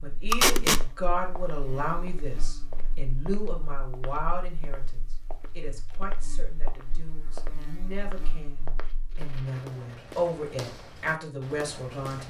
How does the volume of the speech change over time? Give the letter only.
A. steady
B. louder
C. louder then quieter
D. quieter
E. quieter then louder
E.